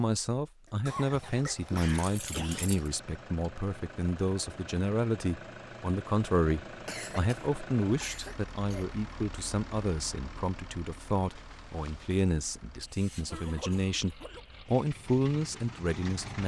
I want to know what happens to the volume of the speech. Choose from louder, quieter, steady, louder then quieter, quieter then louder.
steady.